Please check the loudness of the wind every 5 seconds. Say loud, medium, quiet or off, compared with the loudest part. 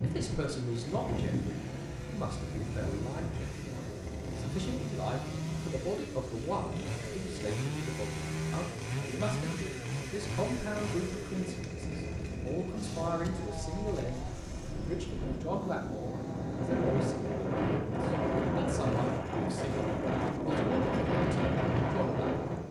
medium, quiet, quiet, loud, loud.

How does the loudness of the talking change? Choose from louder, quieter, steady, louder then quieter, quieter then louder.
steady.